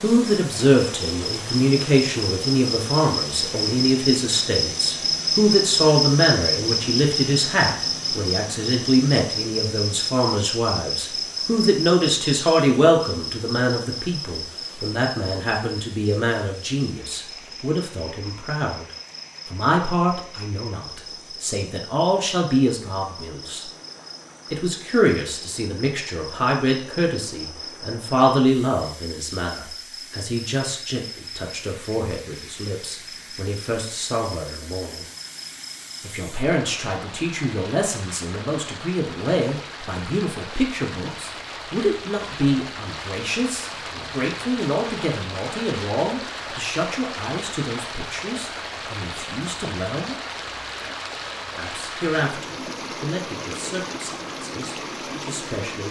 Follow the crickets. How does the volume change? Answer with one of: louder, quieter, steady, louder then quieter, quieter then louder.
quieter.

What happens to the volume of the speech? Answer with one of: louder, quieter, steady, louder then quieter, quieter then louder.
quieter.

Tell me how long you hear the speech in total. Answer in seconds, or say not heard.
52 s.